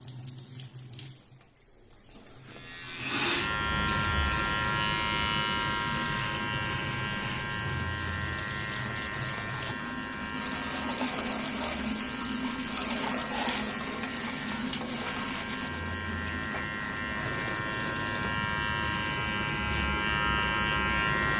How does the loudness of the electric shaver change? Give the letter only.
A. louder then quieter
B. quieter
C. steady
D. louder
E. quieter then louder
E.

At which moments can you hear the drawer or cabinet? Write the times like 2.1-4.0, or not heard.
not heard.